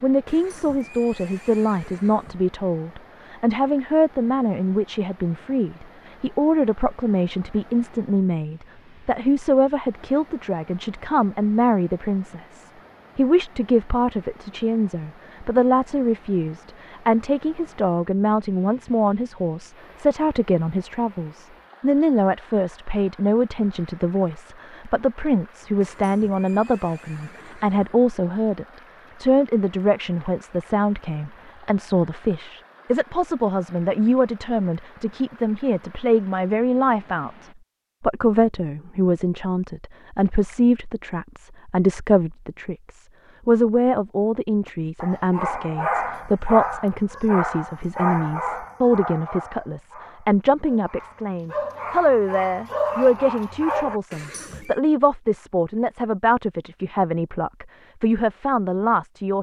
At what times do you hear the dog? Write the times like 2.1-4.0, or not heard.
44.6-54.0.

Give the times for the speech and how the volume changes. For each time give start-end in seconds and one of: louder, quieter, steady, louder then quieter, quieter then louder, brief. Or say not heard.
0.0-59.3 steady.